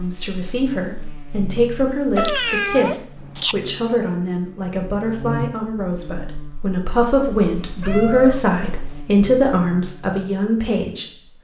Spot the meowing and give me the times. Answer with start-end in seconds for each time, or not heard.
2.1-3.5, 7.1-9.1.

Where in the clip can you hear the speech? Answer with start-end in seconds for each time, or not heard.
0.0-11.4.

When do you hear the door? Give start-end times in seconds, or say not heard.
not heard.